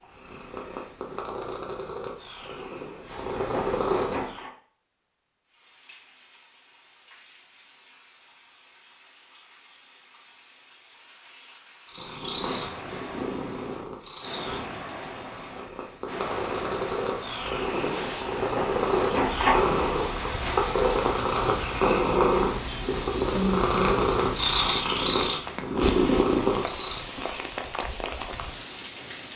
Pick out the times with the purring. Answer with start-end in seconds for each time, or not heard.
0.0-4.5, 11.8-27.1.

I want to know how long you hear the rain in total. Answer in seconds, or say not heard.
24 s.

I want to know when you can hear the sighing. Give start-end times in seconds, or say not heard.
23.3-24.0.